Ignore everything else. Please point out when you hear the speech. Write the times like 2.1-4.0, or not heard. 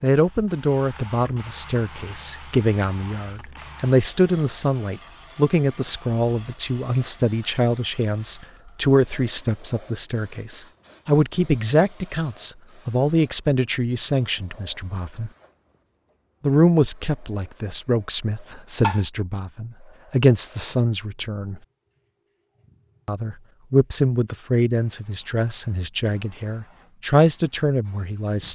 0.0-15.3, 16.4-21.6, 23.1-28.4.